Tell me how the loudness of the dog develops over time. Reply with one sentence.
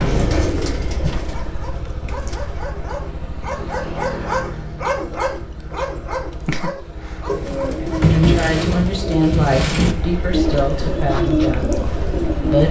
The loudness of the dog goes up, then down.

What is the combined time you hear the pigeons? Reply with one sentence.
The pigeons can be heard for 8 seconds in total.